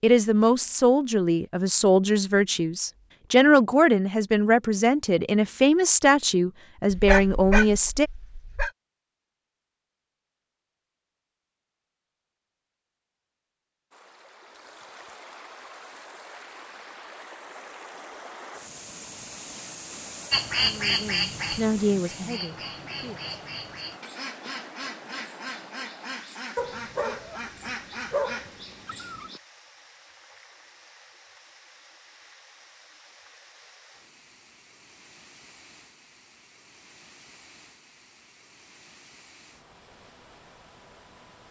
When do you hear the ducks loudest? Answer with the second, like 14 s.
21 s.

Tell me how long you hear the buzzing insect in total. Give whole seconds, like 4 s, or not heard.
not heard.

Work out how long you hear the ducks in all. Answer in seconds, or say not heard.
9 s.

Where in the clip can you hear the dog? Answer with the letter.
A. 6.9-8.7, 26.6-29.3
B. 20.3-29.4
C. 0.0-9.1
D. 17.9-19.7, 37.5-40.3
A.